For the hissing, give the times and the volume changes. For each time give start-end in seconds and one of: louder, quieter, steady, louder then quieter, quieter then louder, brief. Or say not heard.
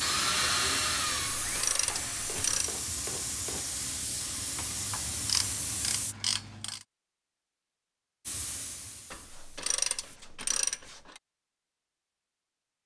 0.0-6.2 steady
8.2-10.1 brief.